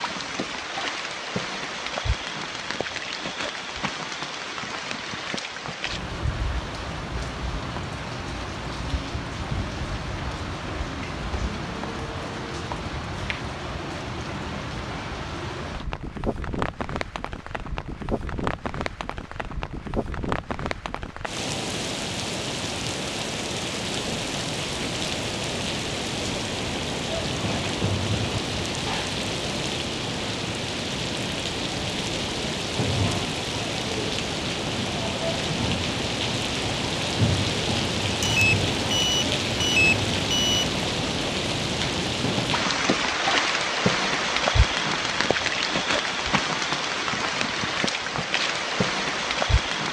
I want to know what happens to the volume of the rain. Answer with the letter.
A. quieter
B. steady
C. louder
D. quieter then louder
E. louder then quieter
C.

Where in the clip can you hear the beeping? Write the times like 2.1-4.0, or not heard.
38.2-40.6.